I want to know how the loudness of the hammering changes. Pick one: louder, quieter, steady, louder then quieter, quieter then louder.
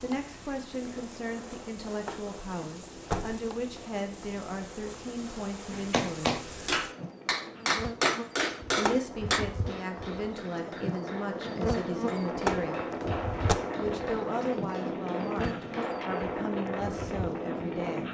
quieter.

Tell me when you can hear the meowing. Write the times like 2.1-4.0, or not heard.
not heard.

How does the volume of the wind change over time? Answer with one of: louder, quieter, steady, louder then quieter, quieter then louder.
louder.